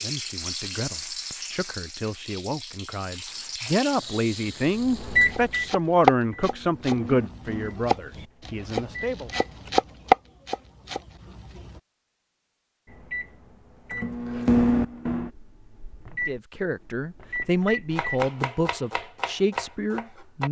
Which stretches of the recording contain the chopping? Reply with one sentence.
The chopping can be heard from 5.2 to 11.8 s and from 17.9 to 20.4 s.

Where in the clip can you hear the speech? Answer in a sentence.
The speech can be heard from 0.0 to 9.3 s and from 16.2 to 20.4 s.